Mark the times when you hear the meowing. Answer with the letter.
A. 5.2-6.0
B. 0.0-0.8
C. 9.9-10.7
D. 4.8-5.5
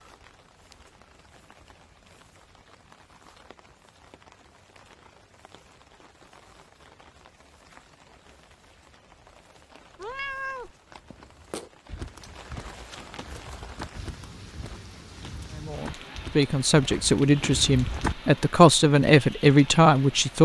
C.